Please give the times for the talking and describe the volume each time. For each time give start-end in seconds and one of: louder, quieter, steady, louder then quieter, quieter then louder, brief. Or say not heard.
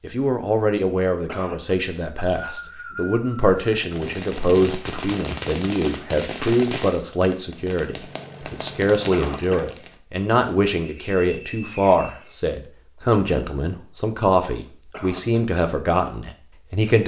0.0-17.0 steady.